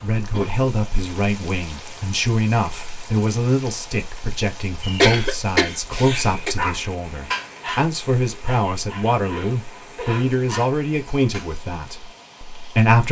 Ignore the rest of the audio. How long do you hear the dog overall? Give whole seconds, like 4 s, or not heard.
5 s.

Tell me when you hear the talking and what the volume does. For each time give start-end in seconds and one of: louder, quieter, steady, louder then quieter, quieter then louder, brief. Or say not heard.
0.0-13.0 steady.